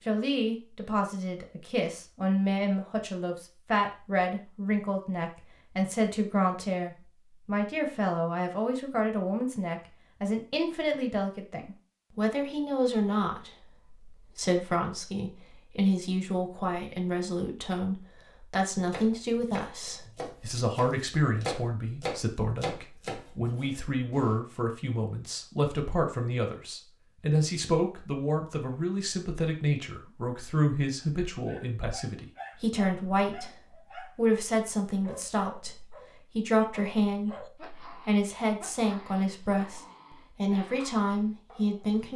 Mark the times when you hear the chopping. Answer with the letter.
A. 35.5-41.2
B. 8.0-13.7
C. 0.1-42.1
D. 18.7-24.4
D.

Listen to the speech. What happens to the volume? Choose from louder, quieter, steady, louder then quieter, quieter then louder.
steady.